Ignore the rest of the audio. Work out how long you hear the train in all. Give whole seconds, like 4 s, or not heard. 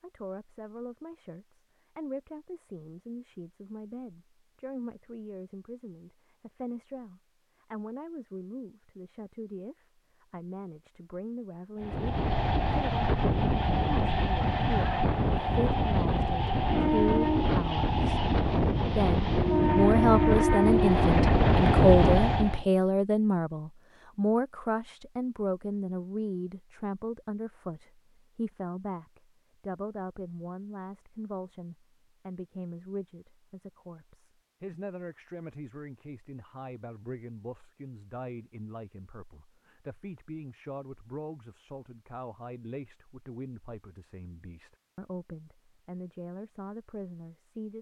11 s.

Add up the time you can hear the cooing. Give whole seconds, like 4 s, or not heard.
not heard.